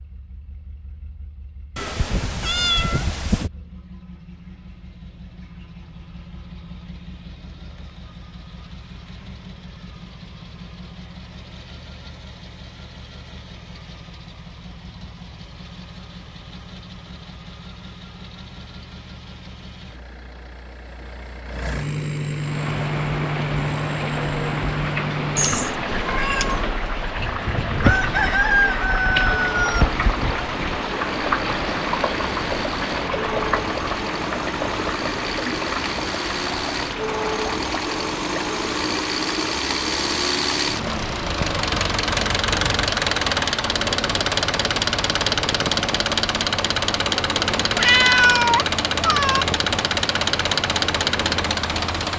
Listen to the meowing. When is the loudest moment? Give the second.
48 s.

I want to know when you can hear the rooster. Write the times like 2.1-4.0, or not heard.
27.8-29.9.